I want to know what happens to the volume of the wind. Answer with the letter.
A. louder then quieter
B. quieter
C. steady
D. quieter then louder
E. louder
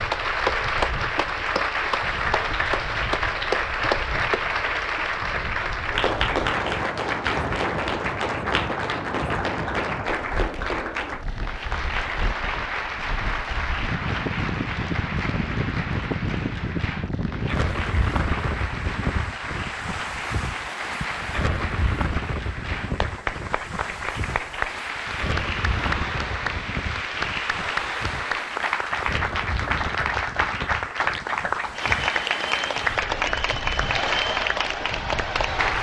A.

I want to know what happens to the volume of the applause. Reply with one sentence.
The volume of the applause goes down, then up.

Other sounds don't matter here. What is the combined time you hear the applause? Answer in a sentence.
The applause can be heard for 36 seconds in total.